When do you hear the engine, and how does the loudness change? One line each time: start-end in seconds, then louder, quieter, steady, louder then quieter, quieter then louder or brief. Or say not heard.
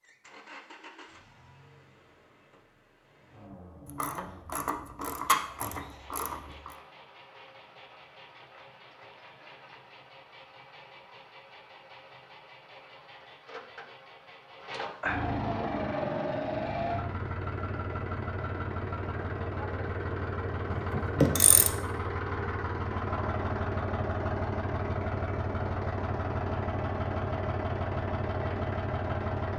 0.0-29.5 louder.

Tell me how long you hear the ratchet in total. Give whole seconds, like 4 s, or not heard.
4 s.